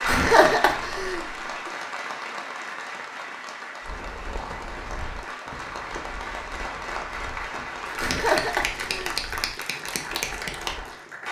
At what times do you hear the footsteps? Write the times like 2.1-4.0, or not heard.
3.8-10.9.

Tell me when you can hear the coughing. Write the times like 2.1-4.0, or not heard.
0.1-1.4, 8.0-9.2.